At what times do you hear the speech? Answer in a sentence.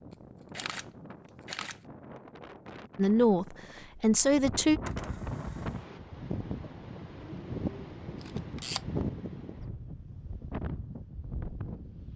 The speech can be heard from 3.0 to 4.8 s.